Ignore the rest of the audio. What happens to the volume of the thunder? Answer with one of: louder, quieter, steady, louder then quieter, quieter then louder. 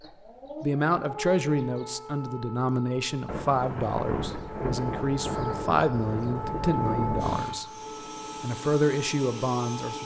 steady.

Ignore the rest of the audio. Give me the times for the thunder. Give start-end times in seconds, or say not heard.
3.2-7.5.